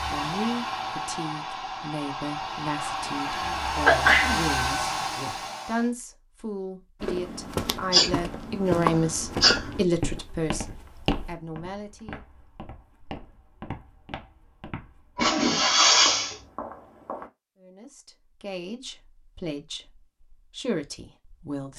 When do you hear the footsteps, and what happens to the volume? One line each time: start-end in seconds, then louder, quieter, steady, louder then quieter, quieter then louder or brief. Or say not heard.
7.0-17.3 quieter then louder.